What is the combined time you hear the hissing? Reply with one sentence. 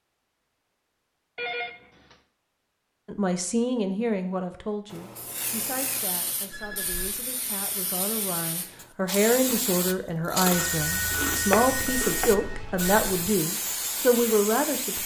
The hissing can be heard for 10 seconds in total.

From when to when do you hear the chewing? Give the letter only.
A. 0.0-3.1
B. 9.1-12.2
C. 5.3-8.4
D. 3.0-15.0
B.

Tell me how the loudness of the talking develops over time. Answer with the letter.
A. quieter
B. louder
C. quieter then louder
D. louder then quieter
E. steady
C.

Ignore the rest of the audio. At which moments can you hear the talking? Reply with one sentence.
You can hear the talking from 3.0 to 15.0 s.